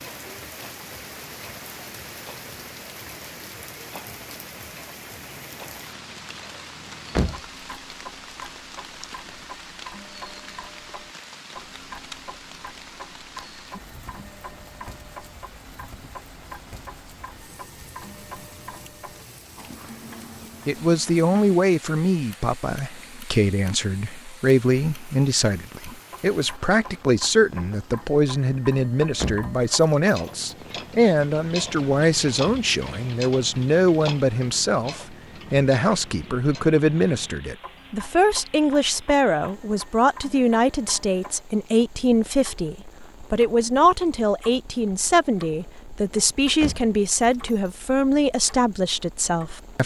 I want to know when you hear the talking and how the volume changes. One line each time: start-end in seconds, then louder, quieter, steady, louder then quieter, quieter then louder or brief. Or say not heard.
20.6-49.8 steady.